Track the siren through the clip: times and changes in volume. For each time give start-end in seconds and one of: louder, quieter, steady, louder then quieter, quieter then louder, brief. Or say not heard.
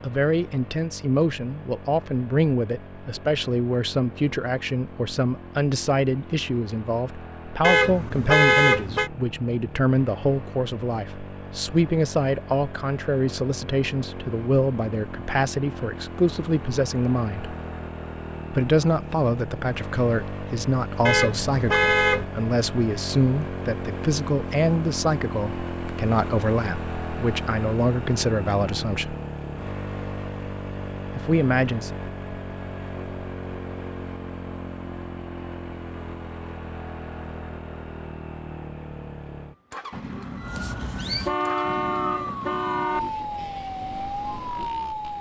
40.4-45.1 steady.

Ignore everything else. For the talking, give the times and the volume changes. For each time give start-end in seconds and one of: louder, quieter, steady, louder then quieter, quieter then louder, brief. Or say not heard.
0.0-17.6 steady
18.5-29.1 steady
31.1-31.9 brief.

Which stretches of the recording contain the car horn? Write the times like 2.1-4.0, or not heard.
7.6-9.1, 21.1-22.2, 41.2-43.0.